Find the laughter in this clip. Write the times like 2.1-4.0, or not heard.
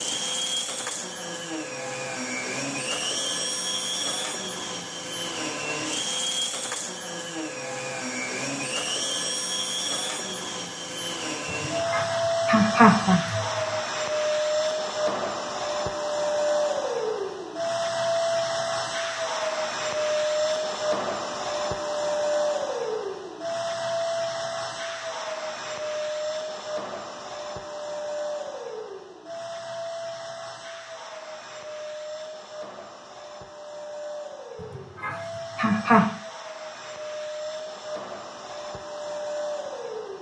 11.6-13.4, 35.0-36.1.